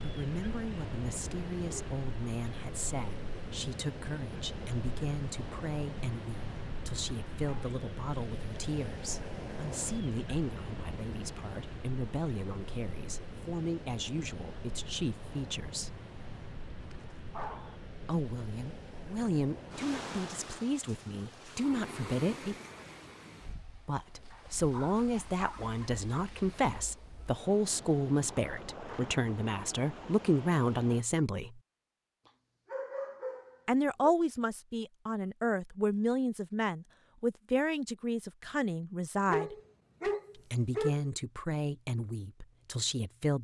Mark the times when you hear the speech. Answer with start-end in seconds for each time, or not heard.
0.0-15.9, 18.1-22.6, 23.9-31.6, 33.6-39.5, 40.4-43.3.